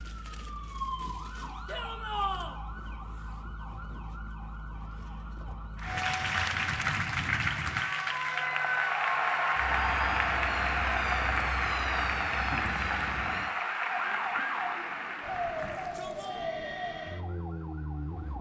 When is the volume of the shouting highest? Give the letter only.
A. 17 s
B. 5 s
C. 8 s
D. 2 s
D.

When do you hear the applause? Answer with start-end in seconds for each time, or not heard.
5.8-15.9.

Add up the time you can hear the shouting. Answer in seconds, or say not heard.
2 s.